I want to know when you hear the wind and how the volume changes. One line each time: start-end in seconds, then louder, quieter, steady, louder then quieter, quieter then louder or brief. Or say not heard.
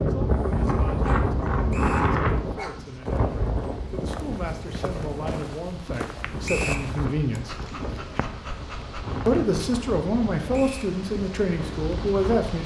0.0-12.5 quieter.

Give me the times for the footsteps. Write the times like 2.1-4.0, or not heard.
2.9-8.2.